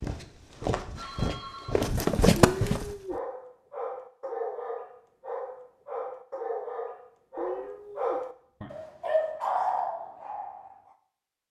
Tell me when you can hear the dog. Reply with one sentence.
You can hear the dog from 3.0 to 10.9 s.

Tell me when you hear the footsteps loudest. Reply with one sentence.
The volume of the footsteps peaks at 2 seconds.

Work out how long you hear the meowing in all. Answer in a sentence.
You can hear the meowing for 2 seconds altogether.